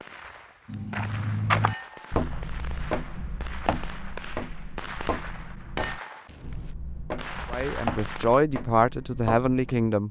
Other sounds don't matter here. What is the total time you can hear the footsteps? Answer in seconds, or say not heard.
9 s.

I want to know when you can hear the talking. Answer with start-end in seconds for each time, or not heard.
7.5-10.0.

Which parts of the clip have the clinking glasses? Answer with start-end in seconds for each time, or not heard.
1.6-2.1, 5.8-6.2.